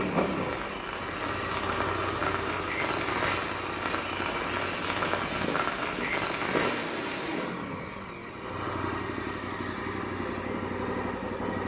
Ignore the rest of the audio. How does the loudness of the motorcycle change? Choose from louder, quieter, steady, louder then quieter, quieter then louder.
steady.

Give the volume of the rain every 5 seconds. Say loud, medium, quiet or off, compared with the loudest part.
loud, loud, off.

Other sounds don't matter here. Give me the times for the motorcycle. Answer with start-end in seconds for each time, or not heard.
0.0-11.6.